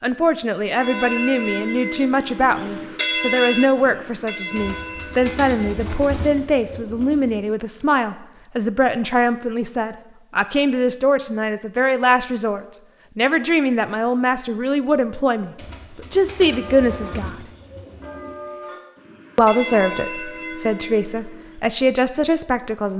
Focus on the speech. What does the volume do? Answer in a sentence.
The volume of the speech stays about the same.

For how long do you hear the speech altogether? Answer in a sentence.
You can hear the speech for 21 seconds altogether.